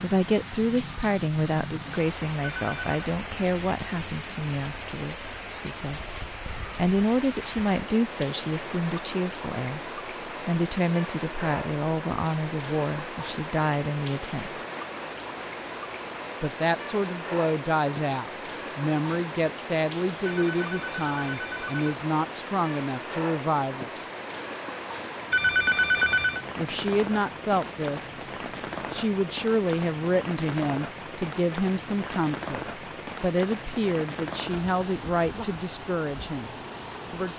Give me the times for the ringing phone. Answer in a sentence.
You can hear the ringing phone from 2.4 to 2.9 s, from 20.2 to 21.9 s and from 25.3 to 26.4 s.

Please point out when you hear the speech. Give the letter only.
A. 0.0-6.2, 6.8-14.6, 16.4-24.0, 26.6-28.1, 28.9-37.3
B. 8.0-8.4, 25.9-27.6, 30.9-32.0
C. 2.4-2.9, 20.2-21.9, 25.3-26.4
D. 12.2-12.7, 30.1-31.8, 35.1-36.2
A.